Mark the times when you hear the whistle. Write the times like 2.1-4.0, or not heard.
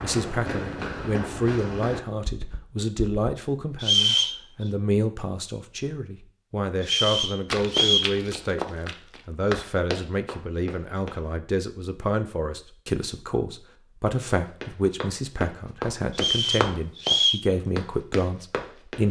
3.8-4.4, 6.8-8.1, 16.1-17.4.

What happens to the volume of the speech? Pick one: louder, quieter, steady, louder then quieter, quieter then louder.
steady.